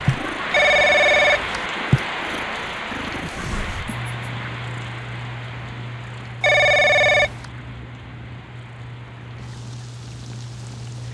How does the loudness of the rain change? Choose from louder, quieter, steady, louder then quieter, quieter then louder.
quieter.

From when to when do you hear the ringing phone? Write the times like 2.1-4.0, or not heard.
0.5-1.7, 6.4-7.5.